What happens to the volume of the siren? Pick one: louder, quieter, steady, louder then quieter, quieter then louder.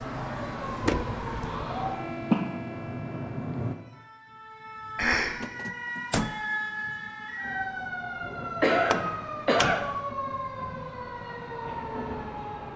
quieter then louder.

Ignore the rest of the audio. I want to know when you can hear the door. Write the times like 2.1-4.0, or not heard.
0.8-1.4, 5.4-6.3, 8.8-10.0.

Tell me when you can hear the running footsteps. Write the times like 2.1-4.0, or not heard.
not heard.